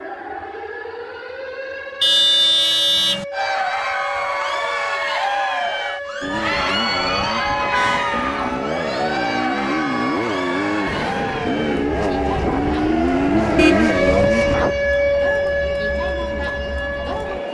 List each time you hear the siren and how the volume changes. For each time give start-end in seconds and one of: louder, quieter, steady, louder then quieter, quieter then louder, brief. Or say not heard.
0.0-17.5 louder.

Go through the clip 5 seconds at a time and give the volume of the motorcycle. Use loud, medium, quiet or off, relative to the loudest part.
off, medium, loud, off.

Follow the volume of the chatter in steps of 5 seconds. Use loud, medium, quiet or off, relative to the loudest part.
loud, loud, medium, medium.